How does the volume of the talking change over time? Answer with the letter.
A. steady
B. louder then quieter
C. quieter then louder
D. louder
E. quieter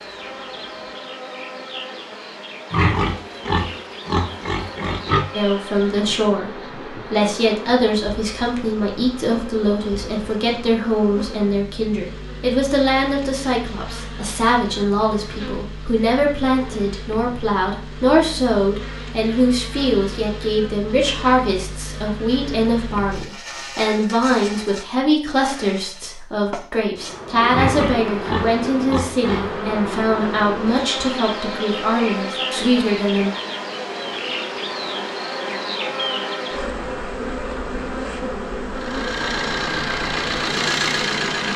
A.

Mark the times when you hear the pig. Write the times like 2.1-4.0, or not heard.
2.7-5.2, 27.5-29.6.